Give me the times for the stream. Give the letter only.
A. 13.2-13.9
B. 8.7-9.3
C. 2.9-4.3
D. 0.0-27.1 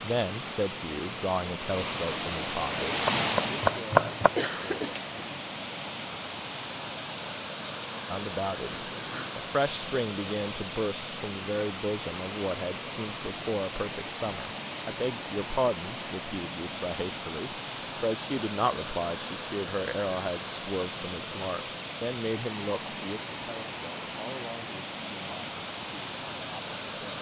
D.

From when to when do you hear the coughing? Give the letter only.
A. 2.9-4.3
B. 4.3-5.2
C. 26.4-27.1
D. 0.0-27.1
B.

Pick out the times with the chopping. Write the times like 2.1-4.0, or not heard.
2.9-4.3.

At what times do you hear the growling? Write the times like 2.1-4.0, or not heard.
8.7-9.3.